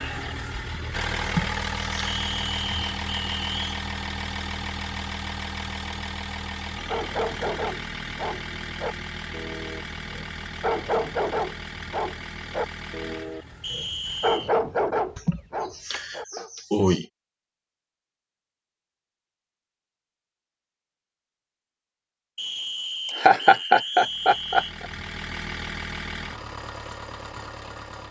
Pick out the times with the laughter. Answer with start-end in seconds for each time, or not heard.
1.2-2.2, 15.2-17.1, 23.1-24.9.